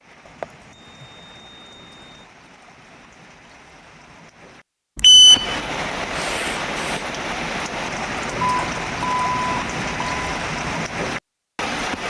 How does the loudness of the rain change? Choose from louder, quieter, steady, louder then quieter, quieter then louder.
louder.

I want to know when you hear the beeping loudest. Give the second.
5 s.